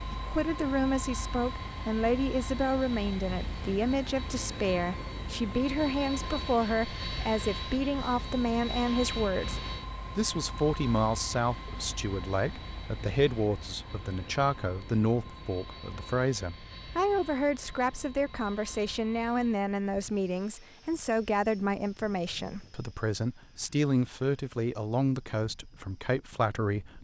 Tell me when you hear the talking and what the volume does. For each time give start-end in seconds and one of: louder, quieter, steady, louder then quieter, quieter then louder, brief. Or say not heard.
0.0-26.9 steady.